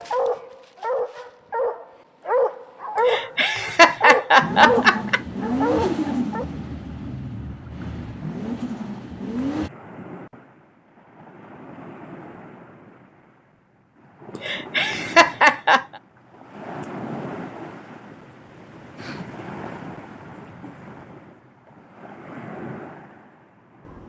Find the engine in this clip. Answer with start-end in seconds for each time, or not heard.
4.4-9.7.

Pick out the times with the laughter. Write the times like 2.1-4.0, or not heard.
3.0-5.2, 14.4-15.8.